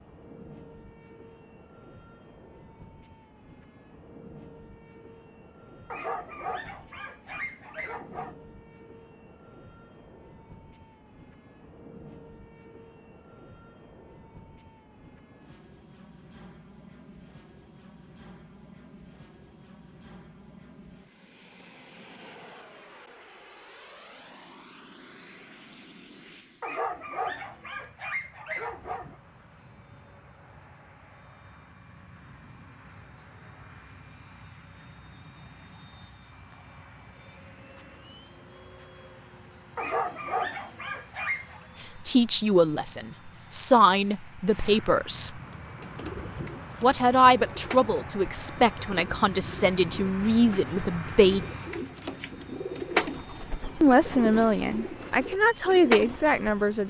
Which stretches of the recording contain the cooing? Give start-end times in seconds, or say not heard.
45.3-56.4.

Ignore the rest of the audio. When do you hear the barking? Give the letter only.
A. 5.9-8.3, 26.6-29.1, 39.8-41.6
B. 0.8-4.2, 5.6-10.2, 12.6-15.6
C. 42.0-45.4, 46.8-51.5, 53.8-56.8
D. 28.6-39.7
A.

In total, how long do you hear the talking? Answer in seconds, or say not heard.
11 s.